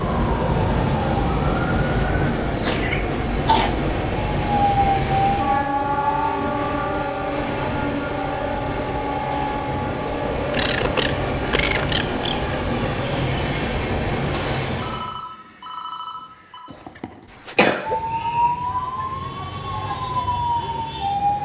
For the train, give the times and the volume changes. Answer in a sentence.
You can hear the train from 0.0 to 15.2 s, at a steady volume.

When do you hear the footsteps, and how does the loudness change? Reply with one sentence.
You can't hear the footsteps here.